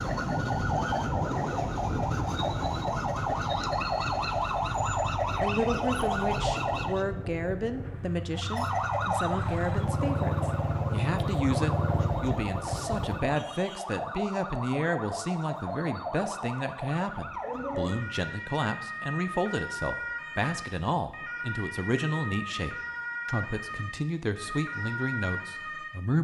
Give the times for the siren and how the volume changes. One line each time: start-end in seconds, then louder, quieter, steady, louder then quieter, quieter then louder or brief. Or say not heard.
0.0-7.0 steady
8.3-26.1 steady.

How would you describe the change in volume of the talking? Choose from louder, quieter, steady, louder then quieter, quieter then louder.
steady.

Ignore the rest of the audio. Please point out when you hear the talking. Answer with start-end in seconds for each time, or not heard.
5.3-26.1.